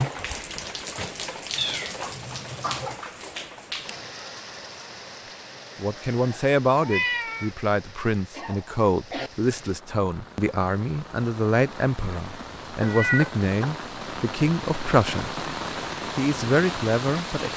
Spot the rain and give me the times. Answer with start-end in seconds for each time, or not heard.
0.0-17.5.